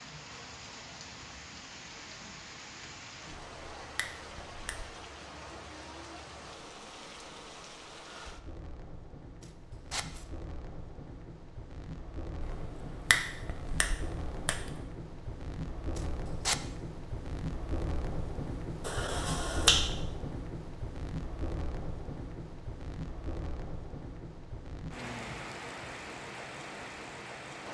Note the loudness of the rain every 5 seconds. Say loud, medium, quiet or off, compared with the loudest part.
medium, medium, medium, loud, loud, loud.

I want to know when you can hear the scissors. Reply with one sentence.
You can hear the scissors from 9.4 to 10.2 s and from 15.9 to 16.6 s.